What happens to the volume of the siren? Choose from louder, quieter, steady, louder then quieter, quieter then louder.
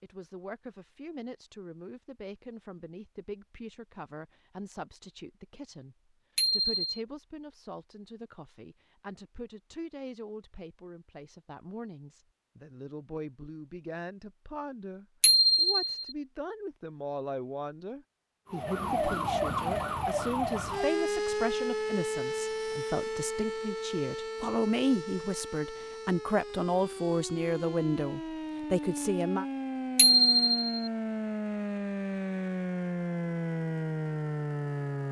quieter then louder.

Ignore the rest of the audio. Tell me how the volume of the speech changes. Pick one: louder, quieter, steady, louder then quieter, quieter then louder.
louder.